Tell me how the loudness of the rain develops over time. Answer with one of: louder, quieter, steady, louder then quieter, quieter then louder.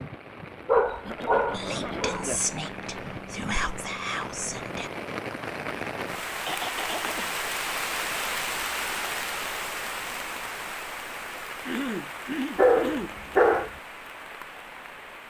louder then quieter.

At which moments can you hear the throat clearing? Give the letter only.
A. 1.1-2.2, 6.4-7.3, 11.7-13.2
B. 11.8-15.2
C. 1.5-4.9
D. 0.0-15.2
A.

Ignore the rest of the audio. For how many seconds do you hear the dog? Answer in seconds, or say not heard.
3 s.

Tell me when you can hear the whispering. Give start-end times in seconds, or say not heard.
1.5-4.9.